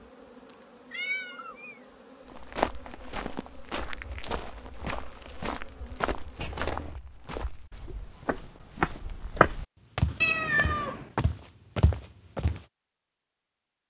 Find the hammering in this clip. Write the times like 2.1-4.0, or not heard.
not heard.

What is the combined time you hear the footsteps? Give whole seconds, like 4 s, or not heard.
10 s.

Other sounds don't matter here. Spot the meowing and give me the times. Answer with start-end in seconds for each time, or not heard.
0.9-1.8, 6.3-7.0, 10.2-11.1.